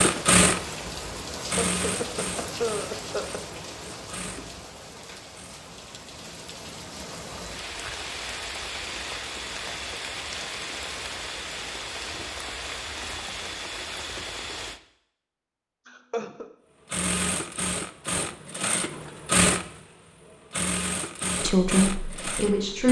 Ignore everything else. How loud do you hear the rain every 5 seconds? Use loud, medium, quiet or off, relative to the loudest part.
loud, loud, loud, off, off.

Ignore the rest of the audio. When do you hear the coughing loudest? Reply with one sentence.
The loudest moment of the coughing is at 3 seconds.